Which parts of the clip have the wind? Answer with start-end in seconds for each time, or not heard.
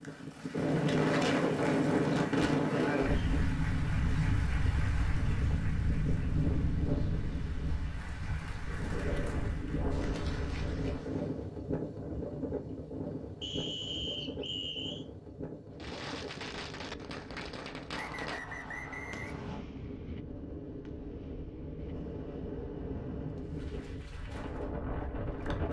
0.0-25.6.